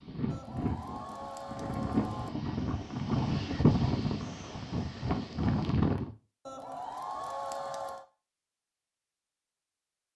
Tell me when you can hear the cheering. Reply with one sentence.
The cheering can be heard from 0.3 to 2.3 s and from 6.5 to 8.1 s.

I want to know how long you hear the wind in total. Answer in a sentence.
The wind can be heard for 6 seconds in total.